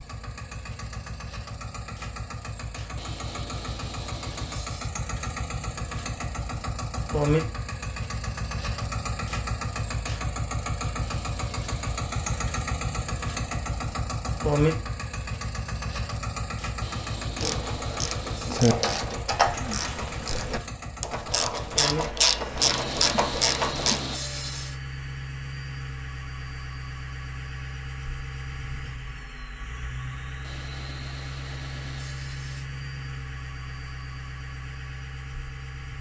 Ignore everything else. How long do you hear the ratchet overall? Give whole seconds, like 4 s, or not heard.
7 s.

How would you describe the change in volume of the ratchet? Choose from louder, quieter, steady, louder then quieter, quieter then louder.
quieter then louder.